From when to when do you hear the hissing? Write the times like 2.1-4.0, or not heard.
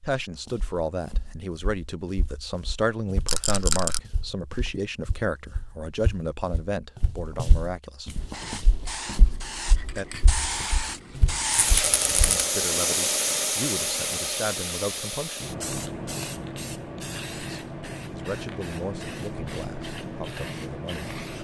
8.2-21.3.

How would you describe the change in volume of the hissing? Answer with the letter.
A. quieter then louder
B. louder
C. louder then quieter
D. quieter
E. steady
C.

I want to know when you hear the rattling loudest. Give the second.
4 s.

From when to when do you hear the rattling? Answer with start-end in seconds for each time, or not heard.
3.2-4.0, 11.5-12.4.